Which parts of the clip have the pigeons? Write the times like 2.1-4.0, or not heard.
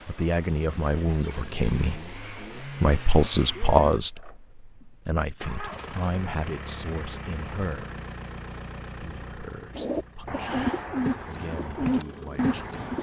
9.8-12.9.